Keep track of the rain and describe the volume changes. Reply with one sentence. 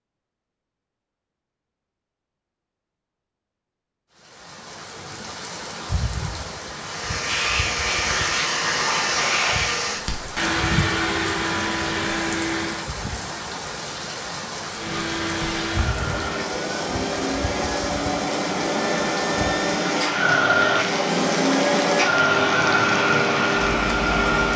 The loudness of the rain stays about the same.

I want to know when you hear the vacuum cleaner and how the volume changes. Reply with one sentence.
The vacuum cleaner can be heard from 6.8 to 12.8 s, at a steady volume; and from 14.7 to 24.5 s, getting louder.